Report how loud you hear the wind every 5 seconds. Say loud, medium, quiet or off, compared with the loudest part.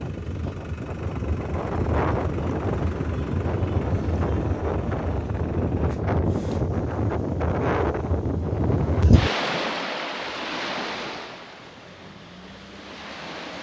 loud, loud, medium.